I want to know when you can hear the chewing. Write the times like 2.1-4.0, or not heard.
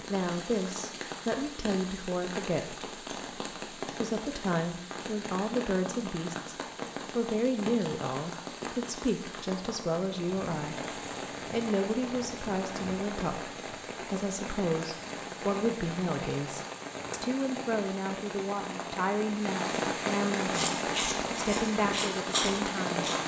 20.4-23.2.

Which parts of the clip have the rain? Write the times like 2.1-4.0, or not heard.
0.0-23.2.